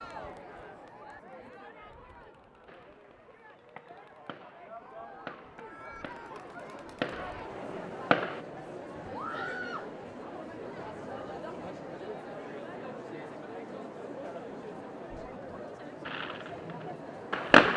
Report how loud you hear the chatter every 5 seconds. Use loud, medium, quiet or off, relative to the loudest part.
medium, loud, loud, loud.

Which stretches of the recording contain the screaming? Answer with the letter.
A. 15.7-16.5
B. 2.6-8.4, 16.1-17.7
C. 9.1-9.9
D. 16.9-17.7
C.